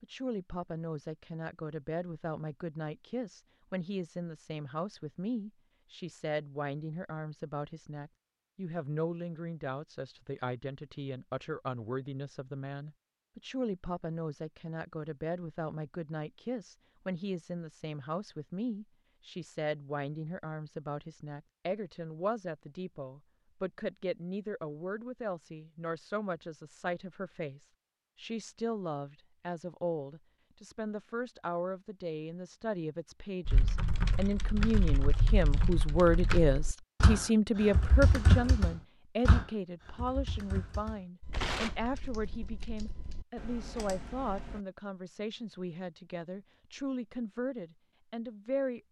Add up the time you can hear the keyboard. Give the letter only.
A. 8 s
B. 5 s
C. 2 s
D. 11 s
D.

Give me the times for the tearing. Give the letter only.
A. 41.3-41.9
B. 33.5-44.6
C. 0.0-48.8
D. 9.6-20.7
A.